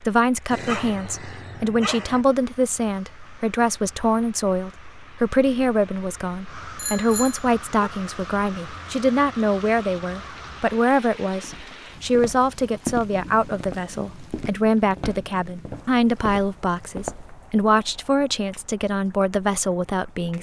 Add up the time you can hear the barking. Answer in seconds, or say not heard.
2 s.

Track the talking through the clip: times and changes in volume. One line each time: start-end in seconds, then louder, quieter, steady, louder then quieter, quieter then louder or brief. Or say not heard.
0.0-20.3 steady.